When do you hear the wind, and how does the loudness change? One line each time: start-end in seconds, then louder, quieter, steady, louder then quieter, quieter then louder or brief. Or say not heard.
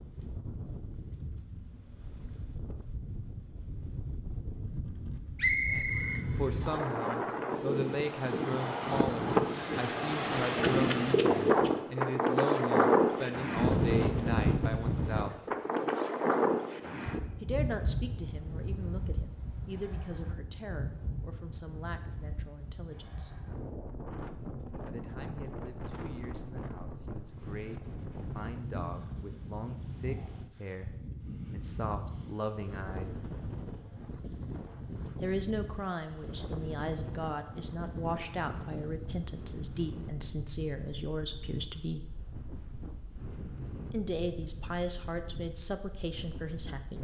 0.0-46.9 louder then quieter.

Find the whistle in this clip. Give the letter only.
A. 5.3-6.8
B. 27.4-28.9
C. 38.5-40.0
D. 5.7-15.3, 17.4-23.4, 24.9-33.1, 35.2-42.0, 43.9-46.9
A.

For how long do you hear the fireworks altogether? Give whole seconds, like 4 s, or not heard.
not heard.